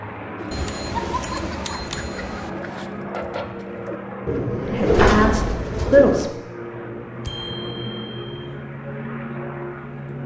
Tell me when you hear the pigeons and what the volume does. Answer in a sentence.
The pigeons can be heard from 0.3 to 6.3 s, getting quieter then louder.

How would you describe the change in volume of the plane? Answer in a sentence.
The loudness of the plane stays about the same.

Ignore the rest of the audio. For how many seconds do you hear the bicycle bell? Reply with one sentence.
You can hear the bicycle bell for 3 seconds altogether.